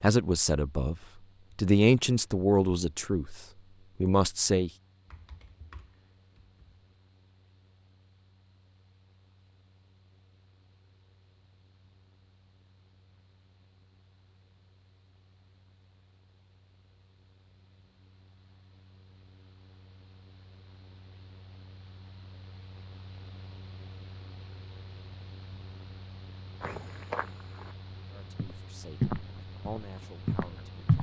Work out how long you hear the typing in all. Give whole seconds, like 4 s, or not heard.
2 s.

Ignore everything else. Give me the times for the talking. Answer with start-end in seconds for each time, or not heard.
0.0-0.9, 1.6-3.4, 4.0-4.7, 28.1-30.9.